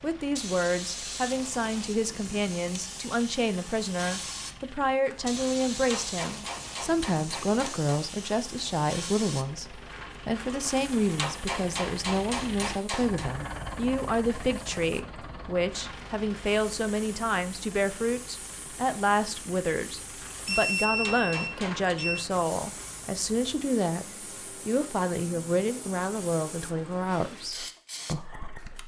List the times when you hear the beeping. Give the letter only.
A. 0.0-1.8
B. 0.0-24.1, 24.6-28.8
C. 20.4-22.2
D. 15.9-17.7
C.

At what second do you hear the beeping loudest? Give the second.
21 s.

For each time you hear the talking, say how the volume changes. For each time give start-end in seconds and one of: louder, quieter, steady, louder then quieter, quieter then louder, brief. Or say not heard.
0.0-24.1 steady
24.6-28.8 quieter.